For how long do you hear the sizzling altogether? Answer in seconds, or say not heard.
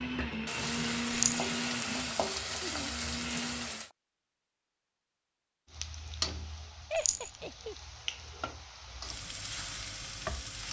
9 s.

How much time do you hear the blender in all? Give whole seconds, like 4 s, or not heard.
4 s.